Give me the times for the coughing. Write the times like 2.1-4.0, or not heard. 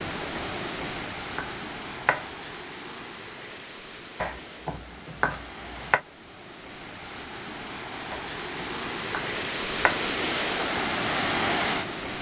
not heard.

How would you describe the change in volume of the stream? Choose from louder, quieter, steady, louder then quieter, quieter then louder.
quieter then louder.